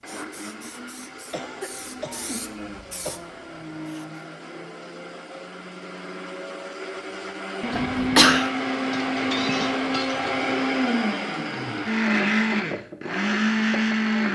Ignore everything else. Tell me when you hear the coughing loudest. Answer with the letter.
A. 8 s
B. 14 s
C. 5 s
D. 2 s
A.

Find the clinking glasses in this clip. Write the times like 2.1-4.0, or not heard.
8.9-10.4.